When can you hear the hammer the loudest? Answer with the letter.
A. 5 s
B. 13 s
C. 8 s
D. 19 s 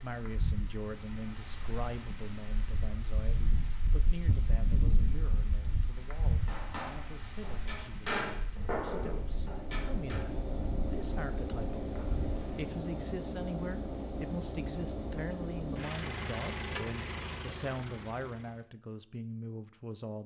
C.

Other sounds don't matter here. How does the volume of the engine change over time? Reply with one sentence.
The volume of the engine stays about the same.